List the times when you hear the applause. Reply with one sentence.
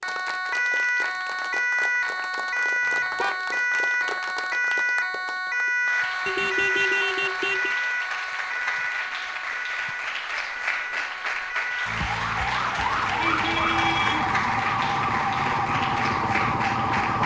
You can hear the applause from 0.0 to 17.2 s.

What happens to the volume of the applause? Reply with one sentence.
The loudness of the applause goes up.